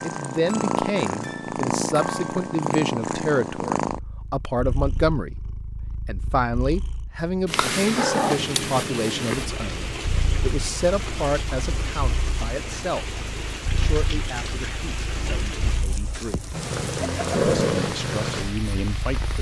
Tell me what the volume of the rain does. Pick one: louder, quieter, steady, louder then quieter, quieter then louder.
steady.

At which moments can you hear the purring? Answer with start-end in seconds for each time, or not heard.
0.0-19.3.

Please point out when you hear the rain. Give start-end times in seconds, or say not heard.
8.3-19.3.